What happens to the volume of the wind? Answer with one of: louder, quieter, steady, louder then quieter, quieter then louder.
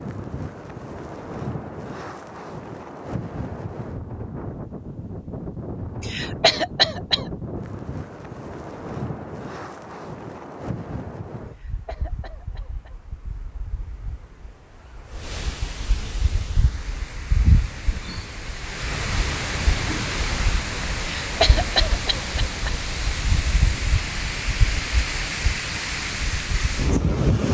quieter then louder.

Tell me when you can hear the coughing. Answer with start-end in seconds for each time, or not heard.
6.0-7.2, 11.4-12.9, 20.9-22.8.